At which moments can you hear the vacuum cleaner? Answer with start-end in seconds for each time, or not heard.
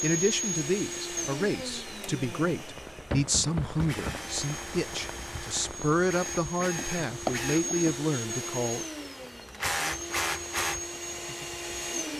0.0-12.1.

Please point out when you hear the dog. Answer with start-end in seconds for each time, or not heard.
not heard.